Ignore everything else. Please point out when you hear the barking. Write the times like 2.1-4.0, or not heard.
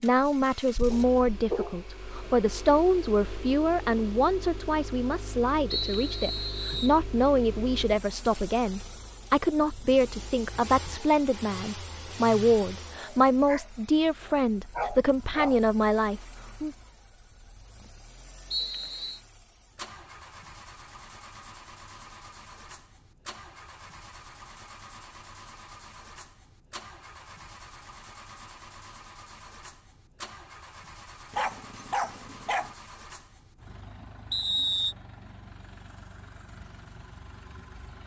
0.9-2.4, 12.9-15.6, 31.3-32.8.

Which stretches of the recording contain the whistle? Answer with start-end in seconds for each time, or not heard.
5.7-7.0, 18.5-19.2, 34.3-35.0.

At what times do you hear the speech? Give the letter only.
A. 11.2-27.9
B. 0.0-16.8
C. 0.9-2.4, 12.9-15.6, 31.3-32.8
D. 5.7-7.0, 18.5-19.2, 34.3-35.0
B.